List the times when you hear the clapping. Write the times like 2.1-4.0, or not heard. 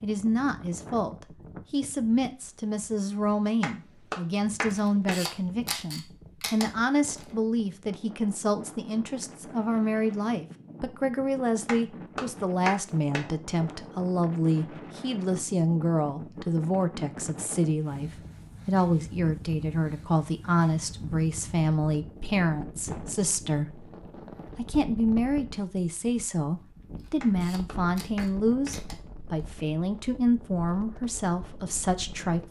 3.6-5.2, 11.7-13.2, 27.2-28.8.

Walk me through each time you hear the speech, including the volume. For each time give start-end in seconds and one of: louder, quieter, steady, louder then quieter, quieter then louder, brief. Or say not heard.
0.0-23.9 steady
24.6-32.4 steady.